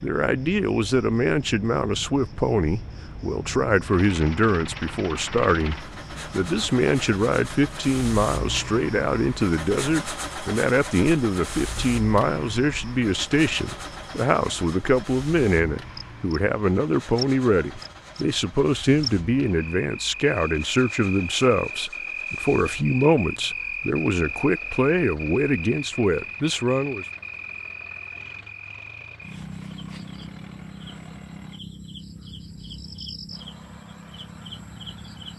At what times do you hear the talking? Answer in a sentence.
The talking can be heard from 0.0 to 27.1 s.